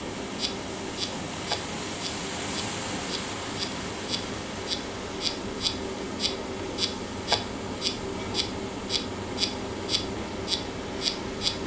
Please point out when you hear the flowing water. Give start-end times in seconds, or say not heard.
0.0-11.6.